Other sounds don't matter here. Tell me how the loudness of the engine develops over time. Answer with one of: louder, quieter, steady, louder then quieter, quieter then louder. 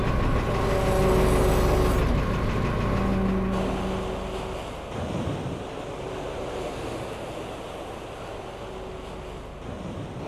quieter.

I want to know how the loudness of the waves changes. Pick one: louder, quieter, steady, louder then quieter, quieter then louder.
quieter.